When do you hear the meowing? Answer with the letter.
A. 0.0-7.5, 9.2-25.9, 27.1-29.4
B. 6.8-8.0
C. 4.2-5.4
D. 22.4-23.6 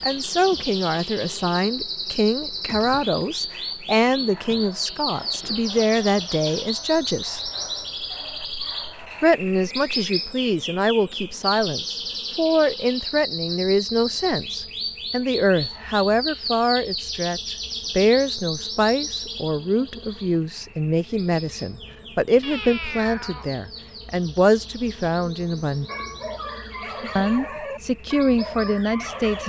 D.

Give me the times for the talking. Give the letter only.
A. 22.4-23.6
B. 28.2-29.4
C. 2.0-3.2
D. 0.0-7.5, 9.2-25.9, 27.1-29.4
D.